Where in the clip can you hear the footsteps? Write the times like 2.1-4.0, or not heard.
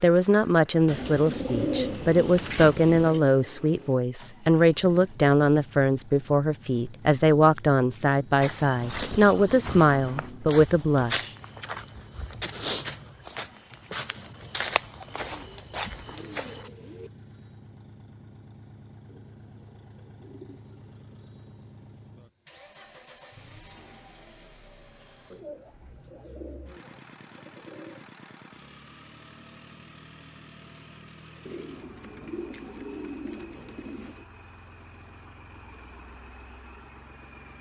8.4-16.7.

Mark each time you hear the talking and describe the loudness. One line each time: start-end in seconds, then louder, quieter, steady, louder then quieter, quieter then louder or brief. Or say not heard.
0.0-11.3 steady.